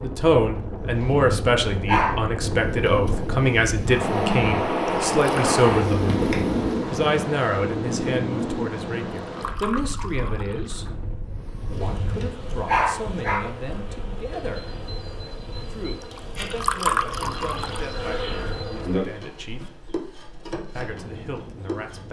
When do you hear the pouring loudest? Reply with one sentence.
The volume of the pouring peaks at 17 seconds.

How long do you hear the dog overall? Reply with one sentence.
You can hear the dog for 3 seconds altogether.